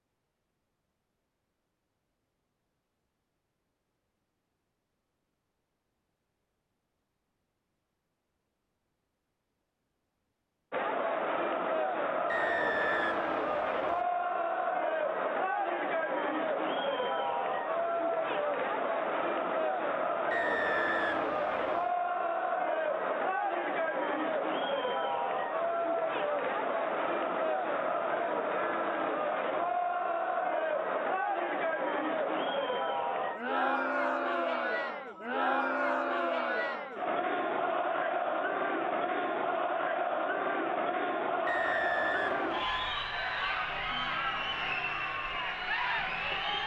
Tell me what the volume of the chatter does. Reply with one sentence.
The volume of the chatter stays about the same.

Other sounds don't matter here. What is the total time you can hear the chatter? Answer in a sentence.
The chatter can be heard for 36 seconds in total.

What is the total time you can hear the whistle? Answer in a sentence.
You can hear the whistle for 5 seconds altogether.